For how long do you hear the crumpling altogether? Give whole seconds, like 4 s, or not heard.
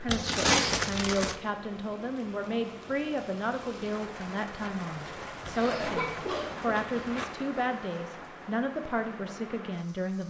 3 s.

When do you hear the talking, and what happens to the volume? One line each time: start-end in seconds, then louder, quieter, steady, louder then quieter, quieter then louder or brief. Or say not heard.
0.0-10.2 steady.